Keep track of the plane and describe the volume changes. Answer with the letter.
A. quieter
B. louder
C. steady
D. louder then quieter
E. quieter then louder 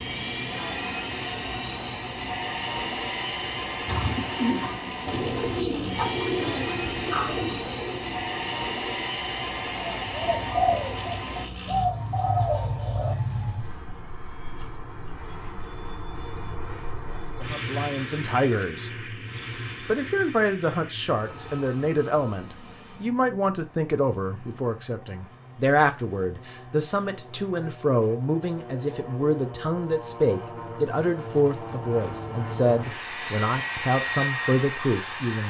E.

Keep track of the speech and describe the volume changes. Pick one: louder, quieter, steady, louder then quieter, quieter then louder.
steady.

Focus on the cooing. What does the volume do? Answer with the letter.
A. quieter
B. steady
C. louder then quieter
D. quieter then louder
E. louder
D.